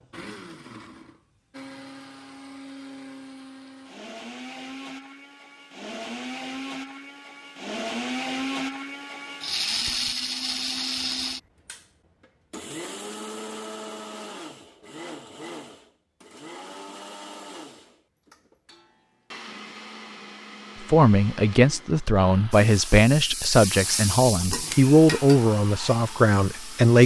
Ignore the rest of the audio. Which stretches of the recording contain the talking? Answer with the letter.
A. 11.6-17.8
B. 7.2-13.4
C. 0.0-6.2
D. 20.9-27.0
D.